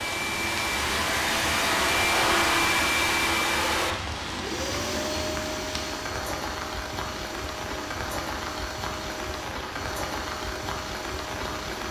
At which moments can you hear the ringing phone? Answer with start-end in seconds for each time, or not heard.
not heard.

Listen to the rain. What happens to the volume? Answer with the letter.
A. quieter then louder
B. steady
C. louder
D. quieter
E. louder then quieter
B.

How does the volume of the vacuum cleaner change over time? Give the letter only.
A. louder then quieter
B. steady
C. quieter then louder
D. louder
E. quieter
E.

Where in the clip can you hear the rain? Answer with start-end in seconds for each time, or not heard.
0.0-11.8.